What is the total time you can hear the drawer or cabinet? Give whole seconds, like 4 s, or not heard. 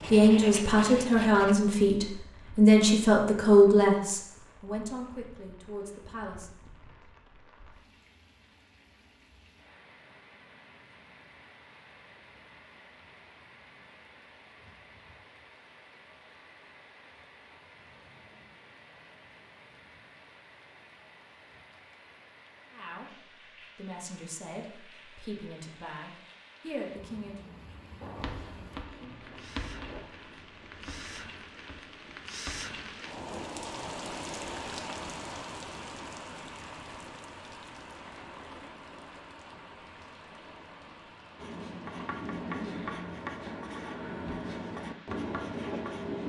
2 s.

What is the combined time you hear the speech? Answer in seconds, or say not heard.
11 s.